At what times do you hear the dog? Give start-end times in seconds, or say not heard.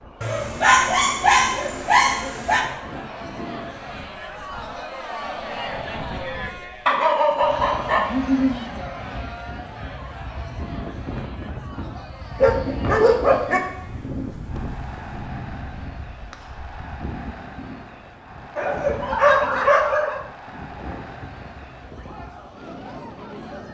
0.2-2.6, 6.8-8.7, 11.9-13.6, 18.6-20.2.